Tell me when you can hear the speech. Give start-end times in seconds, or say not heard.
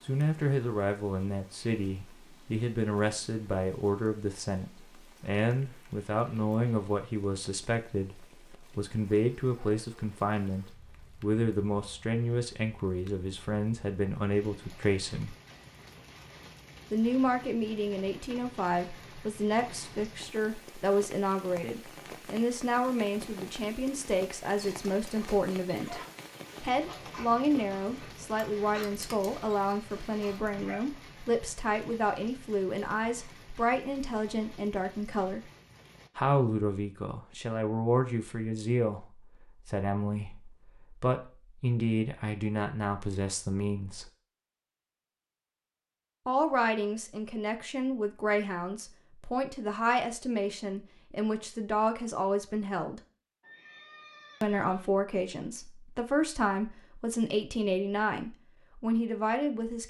0.0-15.3, 16.9-26.0, 26.6-35.4, 36.1-44.0, 46.2-53.0, 54.4-59.8.